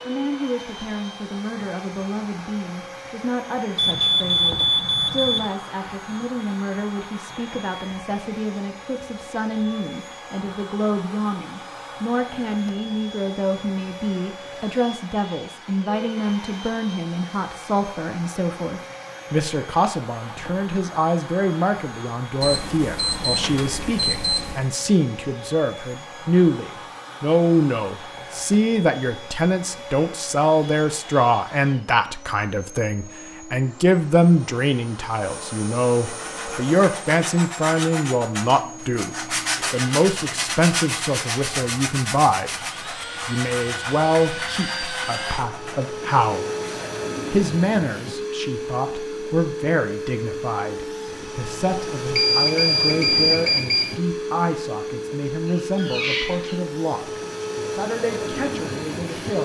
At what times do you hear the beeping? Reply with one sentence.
The beeping can be heard from 3.8 to 5.5 s, from 22.4 to 24.6 s and from 52.1 to 54.0 s.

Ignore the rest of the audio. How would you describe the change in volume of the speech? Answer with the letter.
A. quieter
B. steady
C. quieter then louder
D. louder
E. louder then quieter
E.